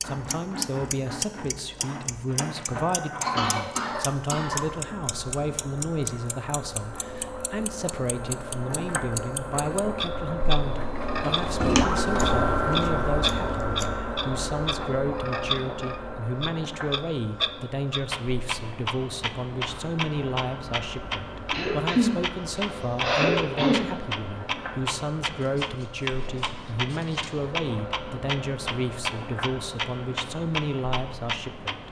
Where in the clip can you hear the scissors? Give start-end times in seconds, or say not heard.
11.6-13.9, 25.4-27.3.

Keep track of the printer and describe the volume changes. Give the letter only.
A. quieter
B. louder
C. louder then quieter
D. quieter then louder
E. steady
C.